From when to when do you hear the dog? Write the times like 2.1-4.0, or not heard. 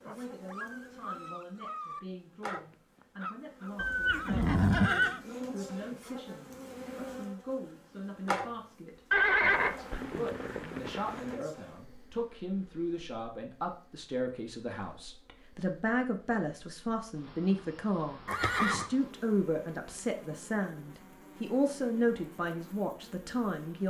0.0-3.8.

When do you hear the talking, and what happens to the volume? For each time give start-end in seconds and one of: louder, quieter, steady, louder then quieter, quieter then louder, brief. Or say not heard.
0.0-23.8 louder.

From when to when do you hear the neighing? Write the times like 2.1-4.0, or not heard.
3.8-5.2, 9.1-11.4, 18.2-18.9.